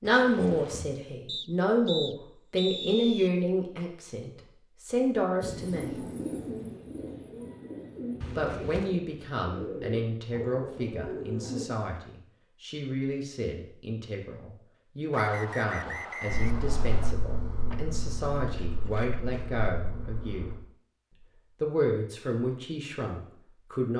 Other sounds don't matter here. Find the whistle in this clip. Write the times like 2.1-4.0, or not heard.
1.2-3.3, 15.1-17.1.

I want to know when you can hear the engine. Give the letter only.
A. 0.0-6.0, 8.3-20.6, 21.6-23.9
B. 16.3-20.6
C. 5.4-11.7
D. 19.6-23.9
B.